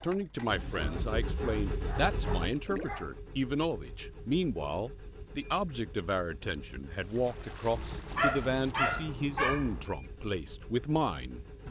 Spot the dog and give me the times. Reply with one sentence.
You can hear the dog from 0.8 to 3.1 s and from 7.7 to 9.8 s.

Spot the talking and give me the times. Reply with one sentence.
The talking can be heard from 0.0 to 11.4 s.